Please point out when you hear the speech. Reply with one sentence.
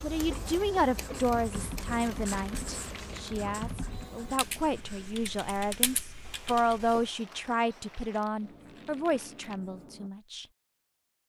You can hear the speech from 0.0 to 10.4 s.